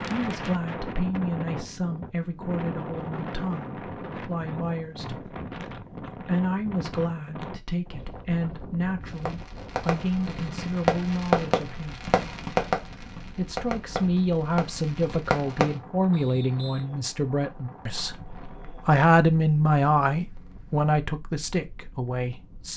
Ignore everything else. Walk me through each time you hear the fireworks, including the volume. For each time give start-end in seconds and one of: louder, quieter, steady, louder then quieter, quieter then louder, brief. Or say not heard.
9.0-15.8 louder then quieter.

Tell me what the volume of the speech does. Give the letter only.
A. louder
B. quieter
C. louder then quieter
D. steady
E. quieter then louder
A.